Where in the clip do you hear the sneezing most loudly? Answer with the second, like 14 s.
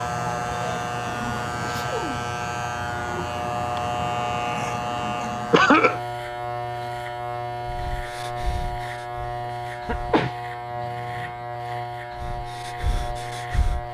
6 s.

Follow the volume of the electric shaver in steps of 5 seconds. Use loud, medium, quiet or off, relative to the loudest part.
loud, loud, medium.